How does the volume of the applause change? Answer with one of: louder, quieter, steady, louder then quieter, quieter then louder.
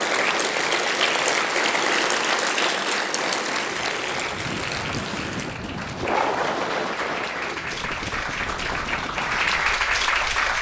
quieter then louder.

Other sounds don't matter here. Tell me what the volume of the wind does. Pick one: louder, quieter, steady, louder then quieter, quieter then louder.
louder then quieter.